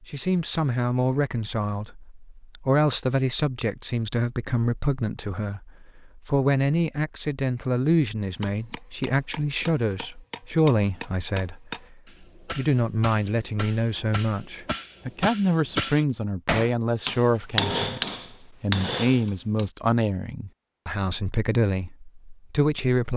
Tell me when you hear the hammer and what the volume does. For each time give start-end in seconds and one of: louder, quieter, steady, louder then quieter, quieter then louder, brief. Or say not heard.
8.4-19.6 louder.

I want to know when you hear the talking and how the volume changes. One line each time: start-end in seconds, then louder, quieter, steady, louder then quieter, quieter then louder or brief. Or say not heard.
0.0-23.1 steady.